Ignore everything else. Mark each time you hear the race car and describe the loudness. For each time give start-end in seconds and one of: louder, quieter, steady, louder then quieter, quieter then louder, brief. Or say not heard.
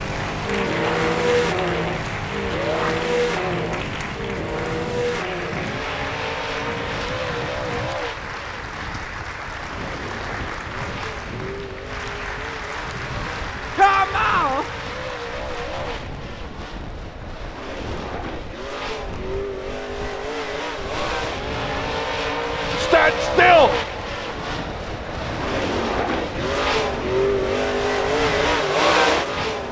0.0-29.6 quieter then louder.